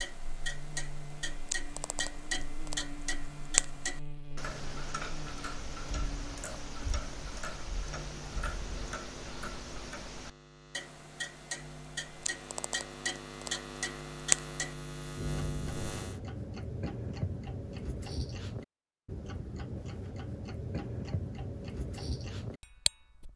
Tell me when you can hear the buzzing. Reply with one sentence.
The buzzing can be heard from 0.0 to 16.2 s.